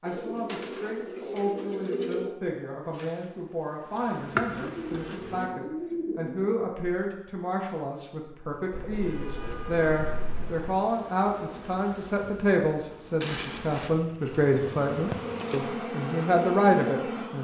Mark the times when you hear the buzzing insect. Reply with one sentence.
The buzzing insect can be heard from 2.9 to 5.5 s and from 9.0 to 17.3 s.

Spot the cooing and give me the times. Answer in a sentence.
The cooing can be heard from 0.1 to 2.4 s, from 4.6 to 6.5 s, from 8.7 to 10.8 s and from 14.1 to 15.5 s.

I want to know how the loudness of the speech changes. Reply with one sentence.
The loudness of the speech goes up.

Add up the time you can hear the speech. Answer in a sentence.
The speech can be heard for 17 seconds in total.